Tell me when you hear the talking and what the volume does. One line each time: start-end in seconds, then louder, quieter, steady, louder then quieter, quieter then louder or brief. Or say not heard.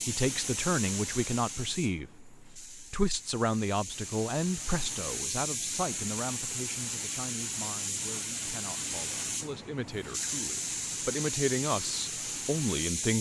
0.1-13.1 quieter then louder.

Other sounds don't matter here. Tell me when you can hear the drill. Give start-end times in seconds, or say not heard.
not heard.